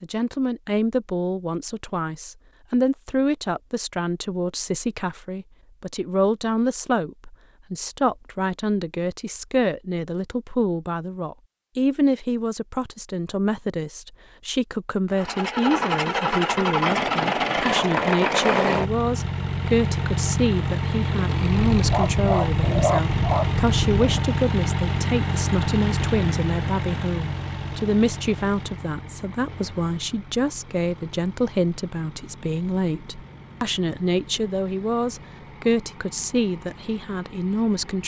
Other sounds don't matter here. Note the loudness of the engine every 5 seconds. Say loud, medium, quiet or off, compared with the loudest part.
off, off, off, loud, loud, medium, quiet, quiet.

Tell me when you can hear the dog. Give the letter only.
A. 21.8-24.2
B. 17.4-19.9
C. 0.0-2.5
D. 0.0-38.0
A.